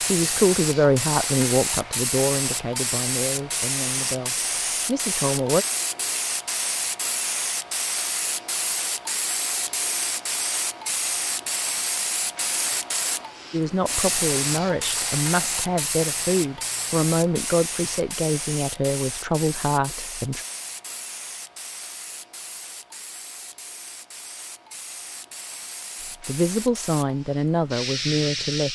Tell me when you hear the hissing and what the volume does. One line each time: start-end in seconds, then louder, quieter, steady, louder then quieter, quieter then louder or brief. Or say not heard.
0.0-28.7 quieter.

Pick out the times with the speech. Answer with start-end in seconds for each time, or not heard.
0.1-5.7, 13.5-20.4, 26.1-28.7.